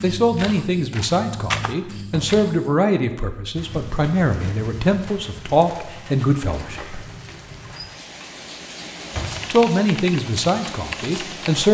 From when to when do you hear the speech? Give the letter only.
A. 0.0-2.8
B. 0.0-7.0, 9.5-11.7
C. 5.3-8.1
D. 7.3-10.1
B.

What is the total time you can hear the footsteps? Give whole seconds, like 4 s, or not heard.
3 s.